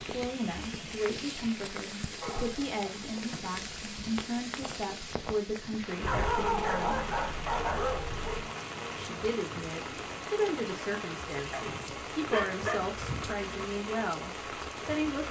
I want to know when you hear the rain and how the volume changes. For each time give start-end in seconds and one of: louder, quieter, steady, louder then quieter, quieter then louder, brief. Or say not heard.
0.0-15.2 steady.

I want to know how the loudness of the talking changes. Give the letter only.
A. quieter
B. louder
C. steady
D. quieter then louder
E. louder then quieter
C.